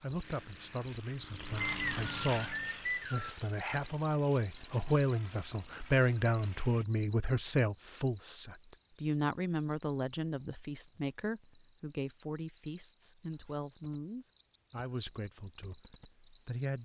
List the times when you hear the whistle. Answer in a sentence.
The whistle can be heard from 1.6 to 3.4 s.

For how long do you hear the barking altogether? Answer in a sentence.
The barking can't be heard in this clip.